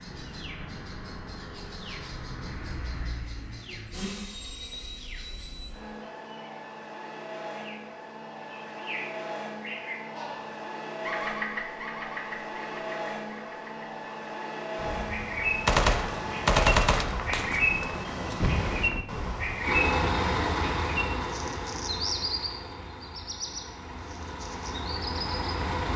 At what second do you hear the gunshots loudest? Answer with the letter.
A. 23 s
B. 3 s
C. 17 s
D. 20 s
C.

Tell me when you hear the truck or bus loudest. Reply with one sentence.
The volume of the truck or bus peaks at 20 seconds.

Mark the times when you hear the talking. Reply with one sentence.
The talking can't be heard in this clip.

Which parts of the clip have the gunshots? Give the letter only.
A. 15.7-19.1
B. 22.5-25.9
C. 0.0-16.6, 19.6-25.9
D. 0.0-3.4
A.